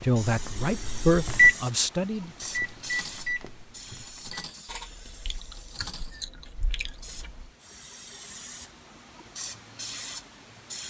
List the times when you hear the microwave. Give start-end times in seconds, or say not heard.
0.0-4.5.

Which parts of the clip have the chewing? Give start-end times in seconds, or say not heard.
4.7-7.5.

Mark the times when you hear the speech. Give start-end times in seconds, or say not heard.
0.0-2.3.